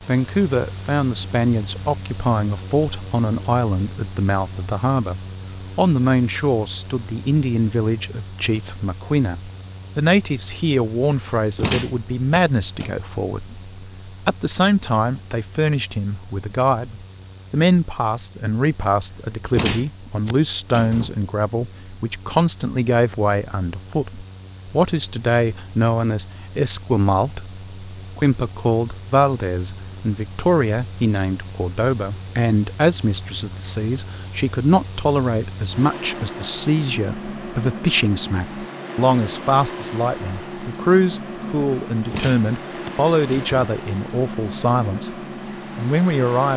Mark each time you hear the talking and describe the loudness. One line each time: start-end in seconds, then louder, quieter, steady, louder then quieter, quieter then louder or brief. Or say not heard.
0.1-45.1 steady
45.8-46.5 brief.